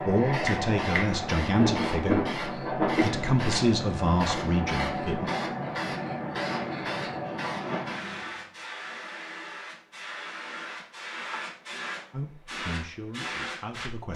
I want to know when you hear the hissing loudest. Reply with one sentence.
The volume of the hissing peaks at 3 seconds.